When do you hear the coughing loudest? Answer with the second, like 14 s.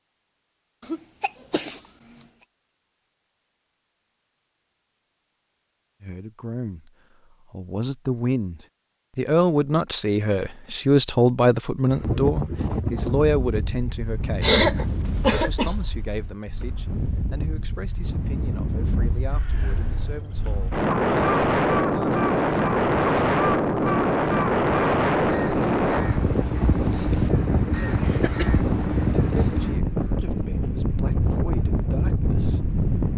15 s.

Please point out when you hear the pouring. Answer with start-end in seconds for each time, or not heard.
not heard.